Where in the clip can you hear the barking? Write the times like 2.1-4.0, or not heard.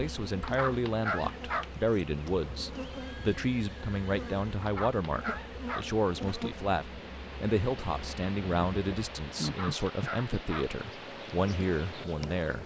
0.4-1.7, 4.6-5.9, 9.4-10.7.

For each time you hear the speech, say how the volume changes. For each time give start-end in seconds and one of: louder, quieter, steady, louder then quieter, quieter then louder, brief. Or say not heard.
0.0-12.6 steady.